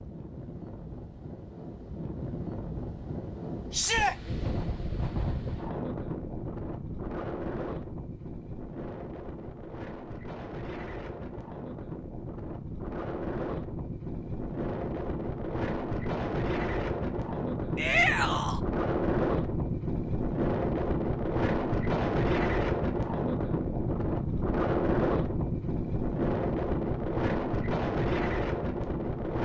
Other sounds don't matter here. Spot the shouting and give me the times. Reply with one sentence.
You can hear the shouting from 3.7 to 4.2 s and from 17.8 to 18.6 s.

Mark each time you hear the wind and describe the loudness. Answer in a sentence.
The wind can be heard from 0.0 to 29.3 s, getting louder.